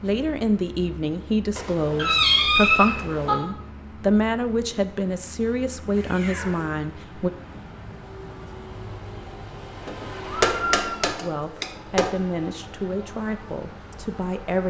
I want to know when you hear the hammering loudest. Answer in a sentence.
The loudest moment of the hammering is at 11 seconds.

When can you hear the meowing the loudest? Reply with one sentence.
The volume of the meowing peaks at 2 seconds.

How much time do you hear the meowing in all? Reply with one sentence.
The meowing can be heard for 3 seconds in total.